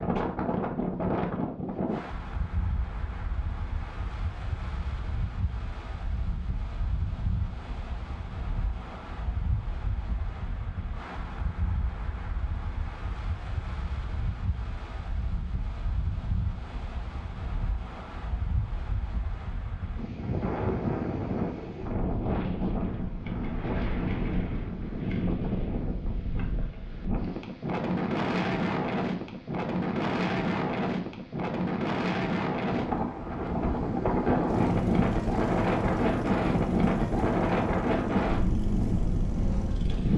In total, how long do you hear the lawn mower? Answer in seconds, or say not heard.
6 s.